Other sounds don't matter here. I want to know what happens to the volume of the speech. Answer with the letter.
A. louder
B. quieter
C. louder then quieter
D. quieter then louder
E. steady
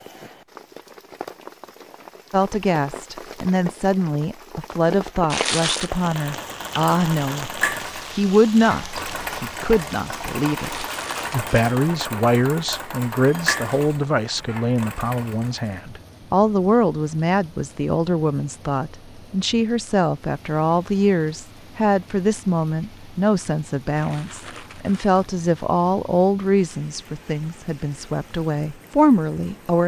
E.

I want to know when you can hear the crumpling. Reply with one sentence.
The crumpling can be heard from 5.3 to 5.9 s, from 10.6 to 11.8 s and from 23.9 to 25.1 s.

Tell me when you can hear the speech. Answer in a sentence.
The speech can be heard from 2.3 to 29.8 s.